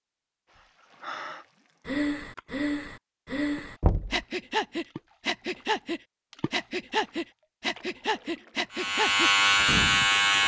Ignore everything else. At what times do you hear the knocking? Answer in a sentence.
You can hear the knocking from 3.8 to 4.2 s.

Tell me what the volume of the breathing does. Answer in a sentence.
The loudness of the breathing stays about the same.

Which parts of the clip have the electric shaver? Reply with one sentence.
You can hear the electric shaver from 8.7 to 10.4 s.